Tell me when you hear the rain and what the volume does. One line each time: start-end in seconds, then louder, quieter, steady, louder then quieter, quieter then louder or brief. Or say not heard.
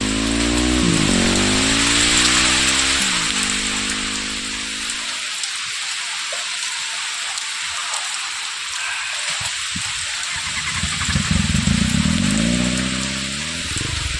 0.0-14.1 quieter.